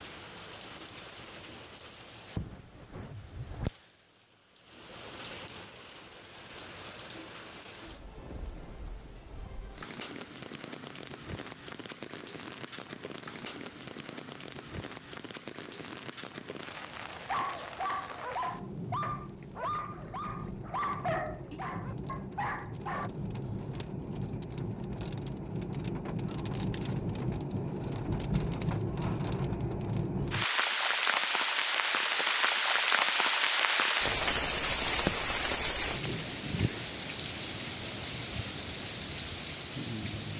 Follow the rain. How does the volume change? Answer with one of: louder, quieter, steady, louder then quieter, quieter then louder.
louder.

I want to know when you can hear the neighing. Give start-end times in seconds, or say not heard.
35.9-36.9.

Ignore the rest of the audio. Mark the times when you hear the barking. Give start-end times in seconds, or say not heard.
17.1-23.1.